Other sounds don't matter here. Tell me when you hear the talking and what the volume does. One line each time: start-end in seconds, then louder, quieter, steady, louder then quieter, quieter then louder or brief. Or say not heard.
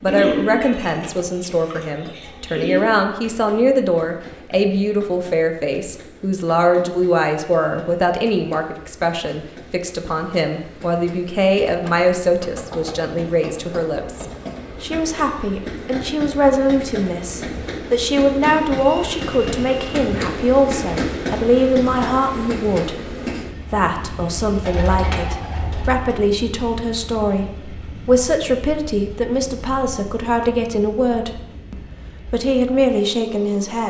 0.0-33.8 steady.